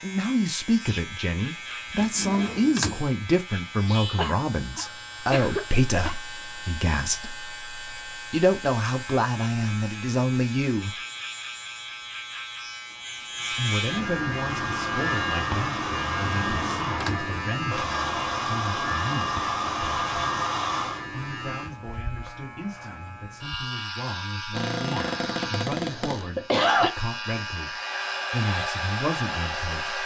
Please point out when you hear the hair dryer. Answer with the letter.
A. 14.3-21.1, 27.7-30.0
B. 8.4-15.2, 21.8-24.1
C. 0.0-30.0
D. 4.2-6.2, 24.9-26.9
A.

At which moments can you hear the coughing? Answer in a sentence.
The coughing can be heard from 4.2 to 6.2 s and from 24.9 to 26.9 s.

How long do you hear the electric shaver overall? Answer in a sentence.
You can hear the electric shaver for 30 seconds altogether.